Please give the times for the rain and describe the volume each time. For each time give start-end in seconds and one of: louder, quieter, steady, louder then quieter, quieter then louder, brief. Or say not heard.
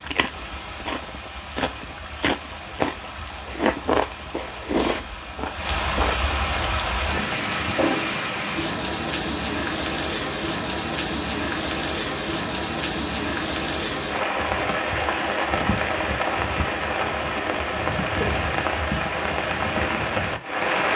0.0-20.9 louder.